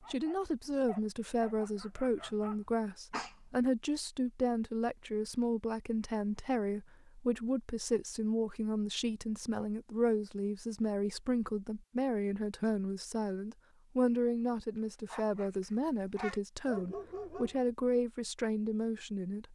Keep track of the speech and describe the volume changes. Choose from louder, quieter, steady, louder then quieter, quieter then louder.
steady.